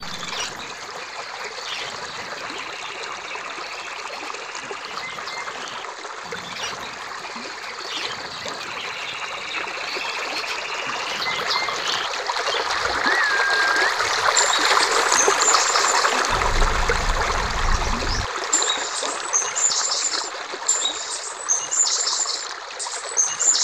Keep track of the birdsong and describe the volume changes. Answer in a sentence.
The volume of the birdsong goes up.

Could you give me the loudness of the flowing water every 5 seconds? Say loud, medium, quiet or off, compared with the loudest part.
medium, medium, loud, loud, medium.